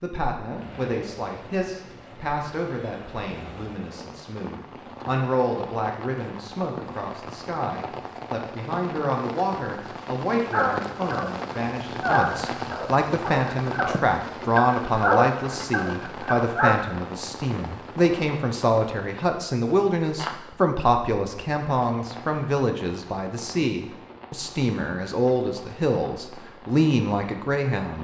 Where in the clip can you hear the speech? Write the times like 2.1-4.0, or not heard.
0.0-27.9.